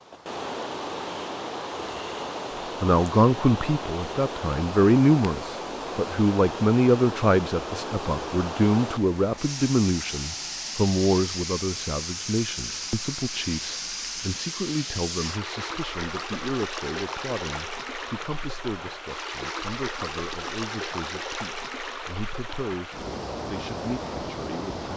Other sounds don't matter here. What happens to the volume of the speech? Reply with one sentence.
The loudness of the speech goes down.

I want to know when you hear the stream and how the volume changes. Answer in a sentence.
You can hear the stream from 0.0 to 24.9 s, at a steady volume.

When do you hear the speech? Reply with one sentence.
The speech can be heard from 2.8 to 24.9 s.